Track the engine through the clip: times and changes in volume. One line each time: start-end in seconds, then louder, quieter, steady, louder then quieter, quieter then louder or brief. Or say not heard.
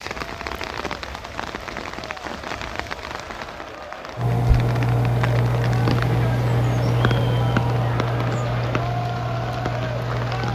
4.2-10.5 quieter.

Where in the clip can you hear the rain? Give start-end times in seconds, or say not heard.
0.0-10.5.